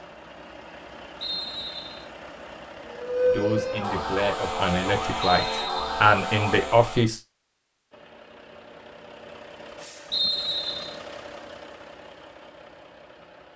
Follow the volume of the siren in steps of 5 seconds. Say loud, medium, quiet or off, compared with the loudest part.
loud, loud, off.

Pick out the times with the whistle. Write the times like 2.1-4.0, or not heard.
1.2-2.0, 5.2-6.0, 10.1-10.9.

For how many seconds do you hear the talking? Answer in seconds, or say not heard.
4 s.